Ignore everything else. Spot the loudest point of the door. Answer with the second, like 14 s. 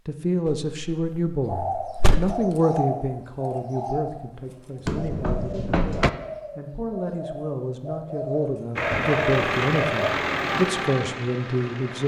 6 s.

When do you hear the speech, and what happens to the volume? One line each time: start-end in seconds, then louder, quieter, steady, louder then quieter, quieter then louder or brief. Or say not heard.
0.1-12.0 quieter then louder.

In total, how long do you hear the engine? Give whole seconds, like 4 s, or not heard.
3 s.